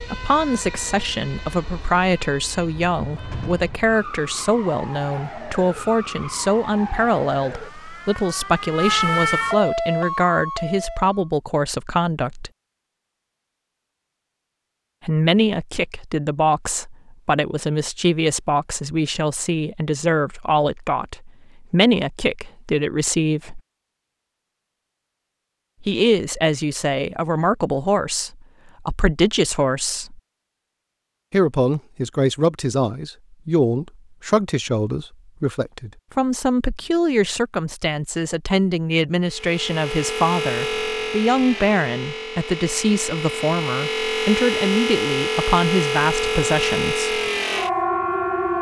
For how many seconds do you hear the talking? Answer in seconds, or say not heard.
41 s.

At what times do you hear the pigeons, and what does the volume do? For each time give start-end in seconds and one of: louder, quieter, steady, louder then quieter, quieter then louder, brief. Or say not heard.
not heard.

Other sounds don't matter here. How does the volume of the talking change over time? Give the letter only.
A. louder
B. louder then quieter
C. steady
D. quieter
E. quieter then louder
C.